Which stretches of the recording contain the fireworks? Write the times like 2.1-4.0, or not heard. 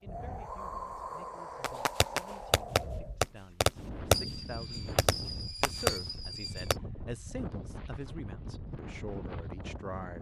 1.6-6.8.